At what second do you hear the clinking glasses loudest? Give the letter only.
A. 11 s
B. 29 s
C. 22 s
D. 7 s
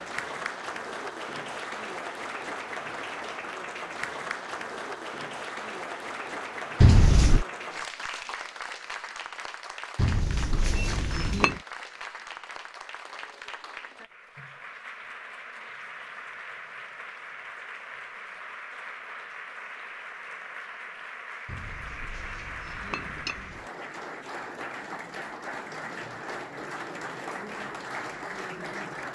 D.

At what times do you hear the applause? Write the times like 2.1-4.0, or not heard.
0.0-29.1.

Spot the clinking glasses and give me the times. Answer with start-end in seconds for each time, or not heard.
6.8-7.5, 9.9-11.6, 21.4-23.6.